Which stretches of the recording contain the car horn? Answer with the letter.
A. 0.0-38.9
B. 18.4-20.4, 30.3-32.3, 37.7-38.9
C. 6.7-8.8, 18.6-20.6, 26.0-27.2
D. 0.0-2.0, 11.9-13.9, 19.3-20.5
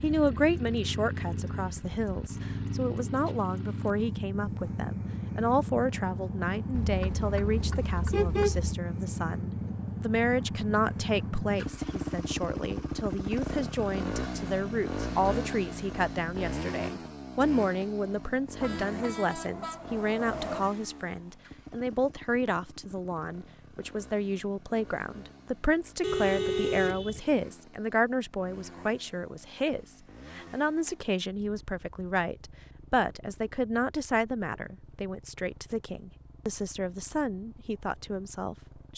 C.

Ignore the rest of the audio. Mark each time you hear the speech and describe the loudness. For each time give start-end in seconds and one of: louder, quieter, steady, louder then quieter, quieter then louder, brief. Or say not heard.
0.0-38.9 steady.